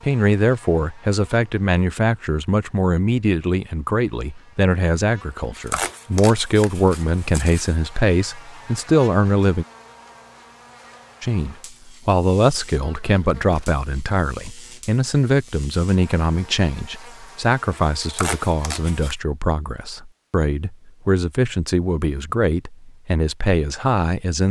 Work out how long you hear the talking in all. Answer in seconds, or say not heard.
23 s.